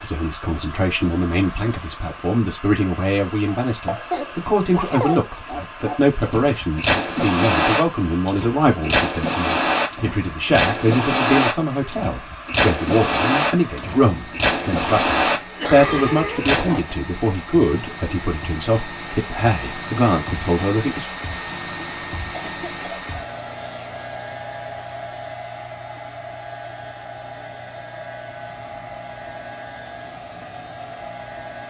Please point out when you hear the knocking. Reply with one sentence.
The knocking can't be heard in this clip.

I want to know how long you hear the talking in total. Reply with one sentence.
The talking can be heard for 21 seconds in total.